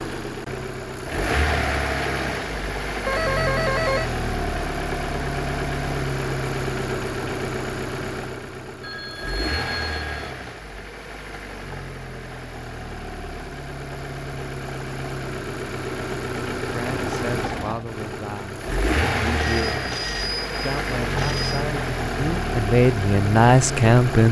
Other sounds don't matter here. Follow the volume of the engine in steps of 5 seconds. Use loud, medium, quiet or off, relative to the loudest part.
loud, loud, medium, loud, loud.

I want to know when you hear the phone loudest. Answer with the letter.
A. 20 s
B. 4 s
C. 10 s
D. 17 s
B.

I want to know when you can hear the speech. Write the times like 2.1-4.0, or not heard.
16.6-19.9, 20.6-24.2.